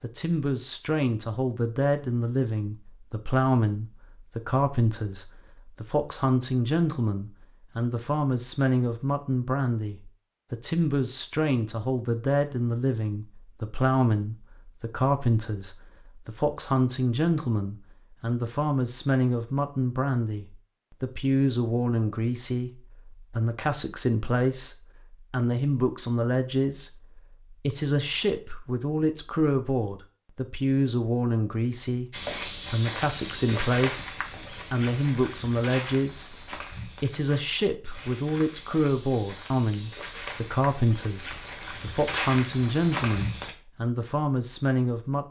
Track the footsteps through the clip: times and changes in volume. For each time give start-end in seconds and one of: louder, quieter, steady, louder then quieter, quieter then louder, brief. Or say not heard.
32.1-43.5 quieter then louder.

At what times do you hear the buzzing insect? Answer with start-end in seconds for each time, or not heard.
not heard.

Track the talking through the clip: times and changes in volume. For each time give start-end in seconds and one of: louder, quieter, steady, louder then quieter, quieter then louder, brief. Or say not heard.
0.0-45.2 steady.